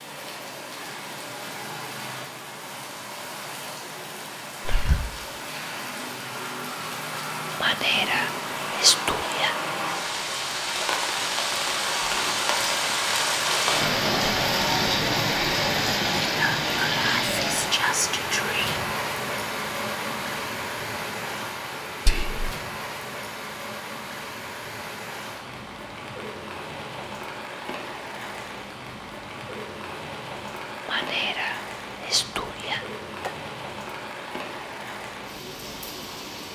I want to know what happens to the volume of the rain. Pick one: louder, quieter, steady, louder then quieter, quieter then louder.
louder then quieter.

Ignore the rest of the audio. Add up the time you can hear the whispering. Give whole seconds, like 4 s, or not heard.
8 s.